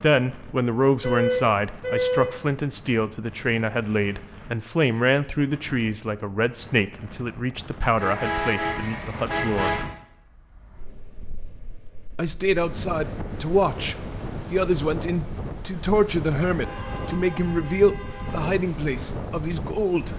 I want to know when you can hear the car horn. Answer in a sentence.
The car horn can be heard from 1.0 to 2.3 s, from 8.0 to 9.8 s and from 16.4 to 18.6 s.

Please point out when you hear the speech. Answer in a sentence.
You can hear the speech from 0.0 to 9.8 s and from 12.2 to 20.1 s.